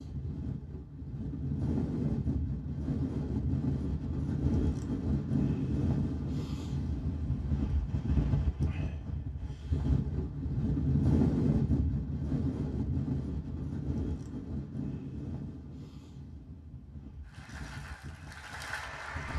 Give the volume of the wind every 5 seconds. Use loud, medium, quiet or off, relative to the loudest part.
loud, loud, loud, quiet.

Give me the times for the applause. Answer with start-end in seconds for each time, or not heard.
17.2-19.3.